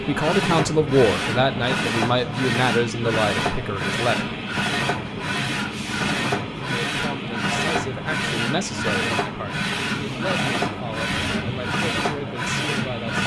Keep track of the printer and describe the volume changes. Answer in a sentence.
The loudness of the printer stays about the same.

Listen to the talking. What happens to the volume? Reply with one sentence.
The loudness of the talking goes down.